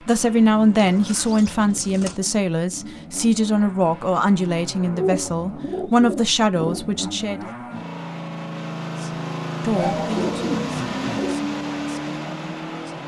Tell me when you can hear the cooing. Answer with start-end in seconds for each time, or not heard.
0.1-2.2, 4.8-6.8, 9.8-11.4.